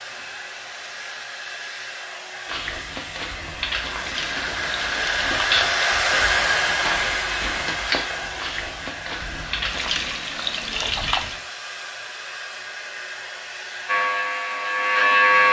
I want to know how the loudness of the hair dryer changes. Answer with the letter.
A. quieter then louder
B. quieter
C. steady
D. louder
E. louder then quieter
E.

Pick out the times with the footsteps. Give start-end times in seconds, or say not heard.
2.5-10.2.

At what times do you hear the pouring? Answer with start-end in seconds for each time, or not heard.
3.5-6.0, 9.2-11.4.